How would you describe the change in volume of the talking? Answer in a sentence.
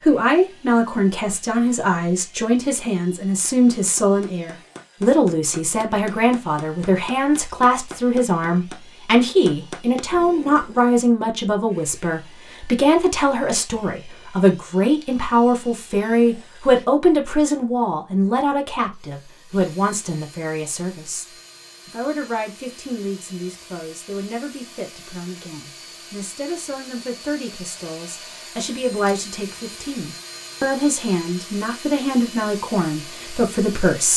The loudness of the talking goes down, then up.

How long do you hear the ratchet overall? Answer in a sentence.
You can't hear the ratchet here.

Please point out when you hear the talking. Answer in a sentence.
The talking can be heard from 0.0 to 34.1 s.